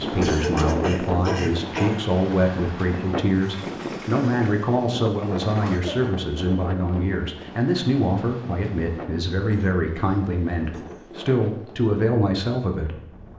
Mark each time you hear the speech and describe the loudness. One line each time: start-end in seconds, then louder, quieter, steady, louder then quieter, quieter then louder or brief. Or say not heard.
0.0-13.0 steady.